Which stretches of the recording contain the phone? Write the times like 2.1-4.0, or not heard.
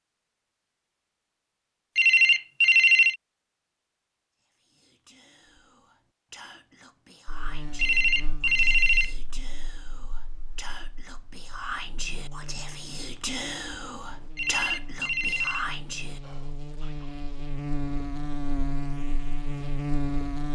1.9-3.1, 7.8-9.2, 14.3-15.7.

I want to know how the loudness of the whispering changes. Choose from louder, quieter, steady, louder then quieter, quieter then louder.
louder.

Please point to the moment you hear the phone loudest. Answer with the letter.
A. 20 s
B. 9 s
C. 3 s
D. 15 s
C.